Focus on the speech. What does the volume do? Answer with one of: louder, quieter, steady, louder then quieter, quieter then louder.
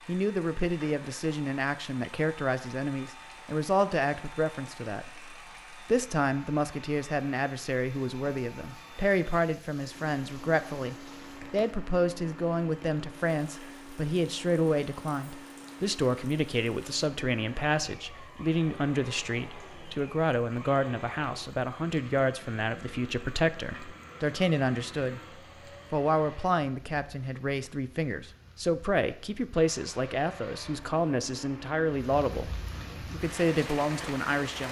steady.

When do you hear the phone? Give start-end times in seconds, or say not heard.
not heard.